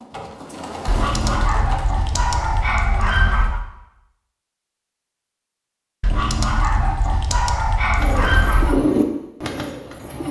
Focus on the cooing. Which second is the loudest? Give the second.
9 s.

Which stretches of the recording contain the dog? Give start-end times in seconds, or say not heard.
0.8-3.6, 6.0-8.8.